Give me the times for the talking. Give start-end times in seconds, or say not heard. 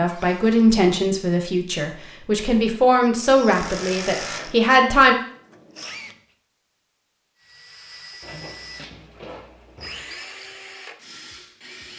0.0-5.2.